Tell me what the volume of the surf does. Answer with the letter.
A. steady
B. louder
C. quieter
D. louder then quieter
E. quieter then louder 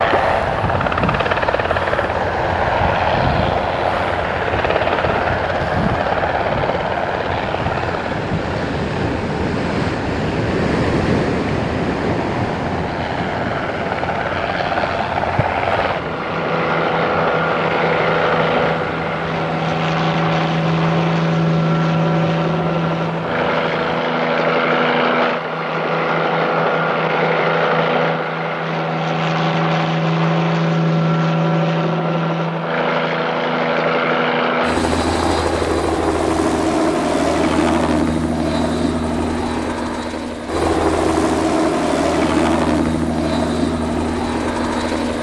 D.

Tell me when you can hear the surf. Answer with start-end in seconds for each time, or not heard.
0.0-24.1.